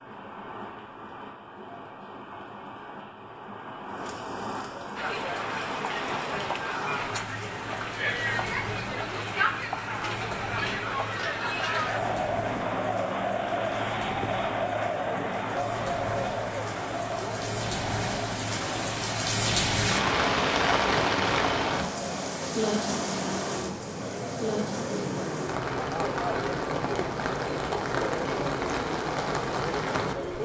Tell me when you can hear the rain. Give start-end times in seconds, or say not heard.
0.0-30.3.